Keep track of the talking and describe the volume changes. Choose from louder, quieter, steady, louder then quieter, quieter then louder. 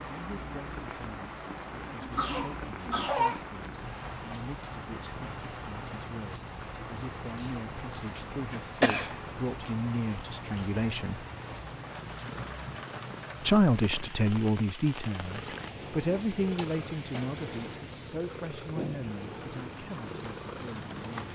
louder then quieter.